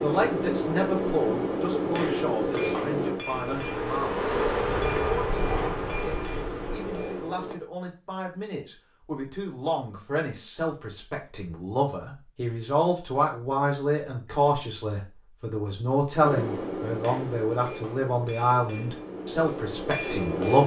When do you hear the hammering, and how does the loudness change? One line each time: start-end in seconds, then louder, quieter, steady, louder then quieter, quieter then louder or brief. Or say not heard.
0.0-7.5 quieter
16.2-20.6 quieter then louder.